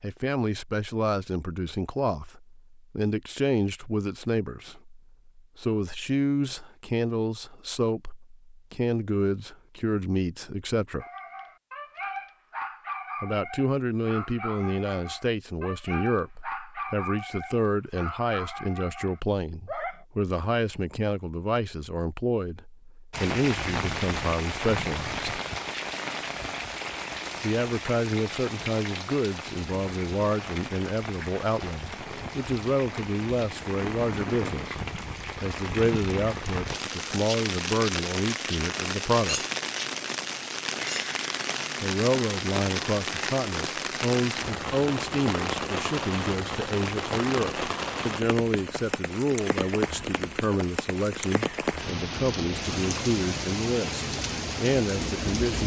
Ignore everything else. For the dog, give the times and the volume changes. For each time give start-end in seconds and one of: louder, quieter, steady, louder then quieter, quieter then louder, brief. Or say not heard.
11.0-20.1 steady.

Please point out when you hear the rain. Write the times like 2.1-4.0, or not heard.
23.1-55.6.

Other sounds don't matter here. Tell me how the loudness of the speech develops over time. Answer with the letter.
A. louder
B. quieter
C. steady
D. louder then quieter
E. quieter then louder
C.